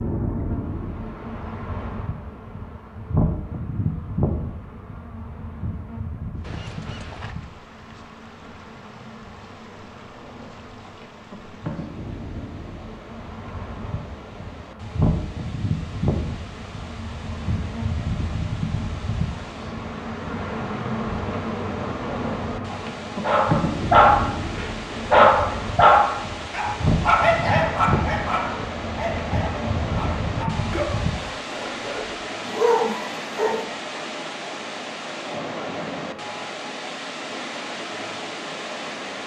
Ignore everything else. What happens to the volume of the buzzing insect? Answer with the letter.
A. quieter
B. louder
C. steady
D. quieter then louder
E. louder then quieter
D.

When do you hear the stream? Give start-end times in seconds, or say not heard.
6.3-39.2.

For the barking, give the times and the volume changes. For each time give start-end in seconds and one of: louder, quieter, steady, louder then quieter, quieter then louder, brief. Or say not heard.
23.2-33.5 quieter then louder.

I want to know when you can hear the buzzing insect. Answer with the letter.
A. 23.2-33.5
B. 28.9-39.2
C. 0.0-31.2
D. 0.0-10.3
C.